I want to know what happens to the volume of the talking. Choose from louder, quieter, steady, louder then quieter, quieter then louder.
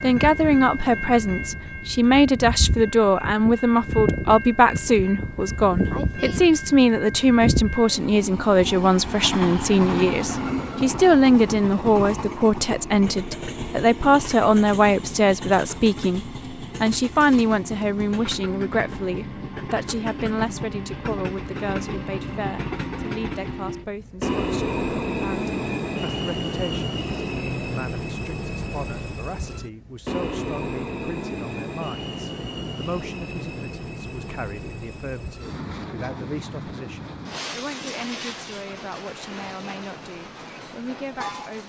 quieter.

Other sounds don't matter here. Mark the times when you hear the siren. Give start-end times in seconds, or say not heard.
not heard.